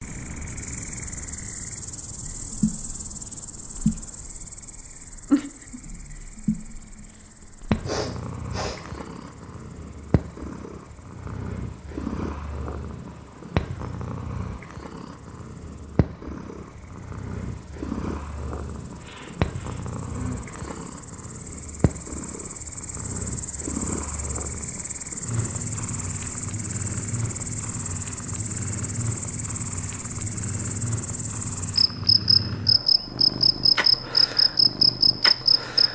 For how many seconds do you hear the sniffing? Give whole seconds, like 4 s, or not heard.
3 s.